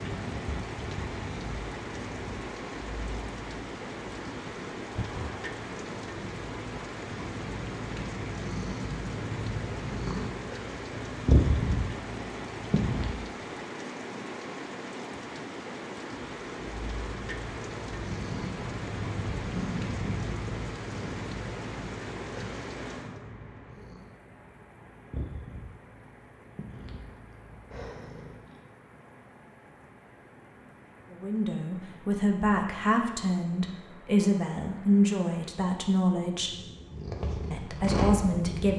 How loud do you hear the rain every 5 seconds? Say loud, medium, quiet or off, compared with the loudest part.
loud, loud, loud, loud, loud, quiet, quiet, quiet.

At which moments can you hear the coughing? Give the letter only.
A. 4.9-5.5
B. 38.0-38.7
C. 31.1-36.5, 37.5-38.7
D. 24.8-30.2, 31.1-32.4
A.